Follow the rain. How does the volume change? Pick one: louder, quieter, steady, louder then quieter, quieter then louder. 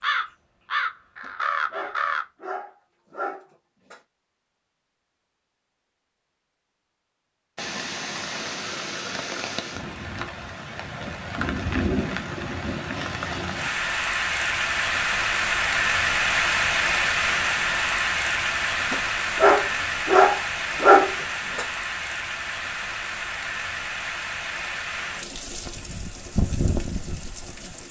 louder then quieter.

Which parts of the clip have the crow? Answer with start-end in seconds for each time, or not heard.
0.0-2.2.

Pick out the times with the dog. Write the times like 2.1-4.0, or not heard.
1.2-4.0, 18.9-21.6.